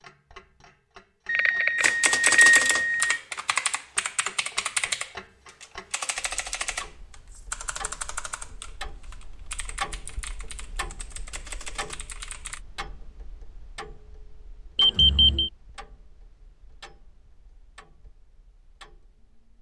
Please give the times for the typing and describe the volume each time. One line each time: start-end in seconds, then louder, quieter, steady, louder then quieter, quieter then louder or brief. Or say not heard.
1.8-12.6 quieter.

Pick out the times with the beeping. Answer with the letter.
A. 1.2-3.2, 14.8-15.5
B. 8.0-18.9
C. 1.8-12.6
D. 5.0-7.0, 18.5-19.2
A.